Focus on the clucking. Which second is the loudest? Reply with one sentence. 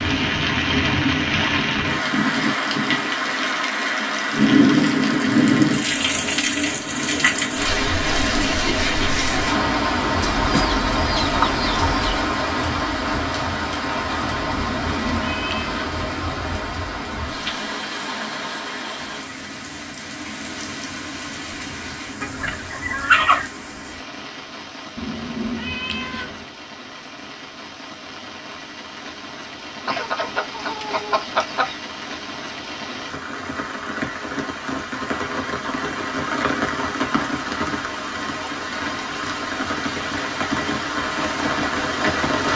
The loudest moment of the clucking is at 23 seconds.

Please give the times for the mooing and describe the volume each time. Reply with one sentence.
You can't hear the mooing here.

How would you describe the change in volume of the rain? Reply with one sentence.
The volume of the rain goes down, then up.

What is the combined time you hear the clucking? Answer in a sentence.
The clucking can be heard for 5 seconds in total.